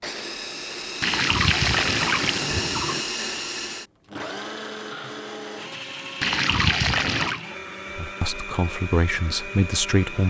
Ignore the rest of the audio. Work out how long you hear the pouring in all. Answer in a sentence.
You can hear the pouring for 3 seconds altogether.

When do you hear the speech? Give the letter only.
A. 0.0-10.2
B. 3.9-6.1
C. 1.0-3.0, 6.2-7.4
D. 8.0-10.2
D.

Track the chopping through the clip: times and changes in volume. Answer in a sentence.
The chopping can't be heard in this clip.